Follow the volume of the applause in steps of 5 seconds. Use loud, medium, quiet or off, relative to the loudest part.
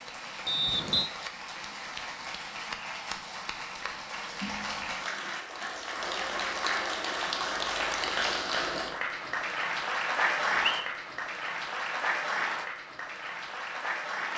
medium, loud, loud.